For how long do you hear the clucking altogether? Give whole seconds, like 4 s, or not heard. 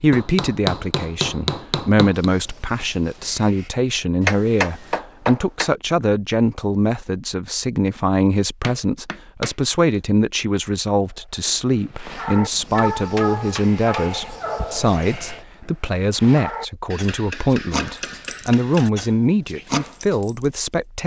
not heard.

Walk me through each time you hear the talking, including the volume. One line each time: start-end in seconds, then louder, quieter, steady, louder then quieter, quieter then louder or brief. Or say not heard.
0.0-21.0 steady.